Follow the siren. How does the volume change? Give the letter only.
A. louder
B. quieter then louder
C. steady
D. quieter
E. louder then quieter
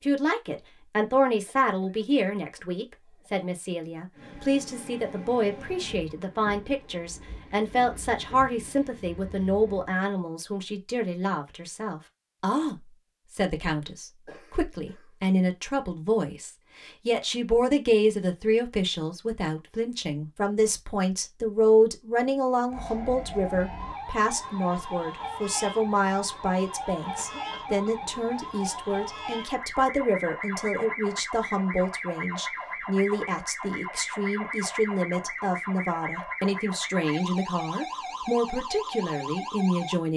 C.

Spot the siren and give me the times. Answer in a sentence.
You can hear the siren from 22.6 to 40.0 s.